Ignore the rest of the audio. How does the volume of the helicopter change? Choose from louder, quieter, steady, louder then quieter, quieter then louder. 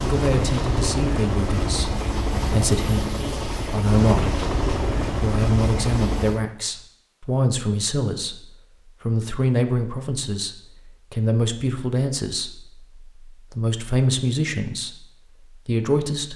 steady.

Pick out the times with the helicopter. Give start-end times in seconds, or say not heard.
0.0-6.5.